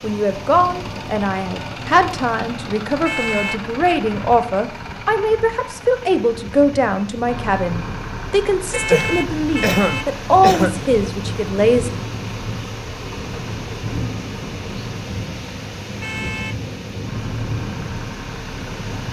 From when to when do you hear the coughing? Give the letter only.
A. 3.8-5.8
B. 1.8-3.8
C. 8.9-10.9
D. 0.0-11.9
C.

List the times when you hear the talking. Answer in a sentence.
The talking can be heard from 0.0 to 11.9 s.